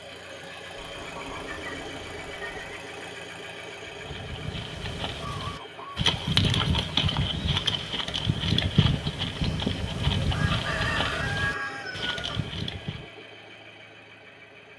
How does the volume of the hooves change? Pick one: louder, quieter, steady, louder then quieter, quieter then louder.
louder then quieter.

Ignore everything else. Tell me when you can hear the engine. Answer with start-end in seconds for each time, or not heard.
0.0-14.7.